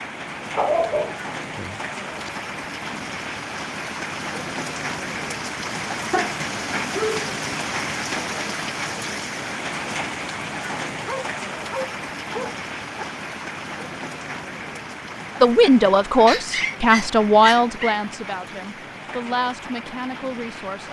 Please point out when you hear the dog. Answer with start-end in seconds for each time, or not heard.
0.6-2.3, 6.1-7.2, 11.1-13.1, 16.2-17.9.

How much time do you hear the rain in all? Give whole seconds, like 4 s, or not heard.
21 s.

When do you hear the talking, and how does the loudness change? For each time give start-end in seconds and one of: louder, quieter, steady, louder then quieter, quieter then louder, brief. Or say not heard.
15.4-20.8 quieter.